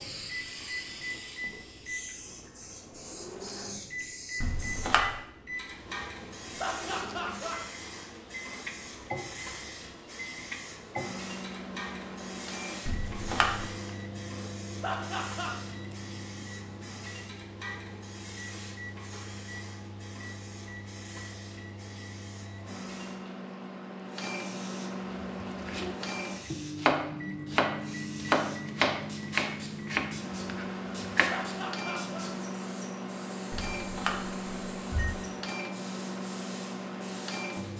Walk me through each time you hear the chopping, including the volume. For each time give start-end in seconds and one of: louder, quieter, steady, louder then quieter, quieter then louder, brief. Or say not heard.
25.4-31.4 louder then quieter.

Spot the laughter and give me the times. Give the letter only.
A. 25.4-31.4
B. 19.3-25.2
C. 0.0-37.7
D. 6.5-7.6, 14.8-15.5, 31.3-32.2
D.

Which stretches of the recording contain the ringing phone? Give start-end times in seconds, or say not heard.
4.4-5.1, 12.8-13.7, 33.5-35.1.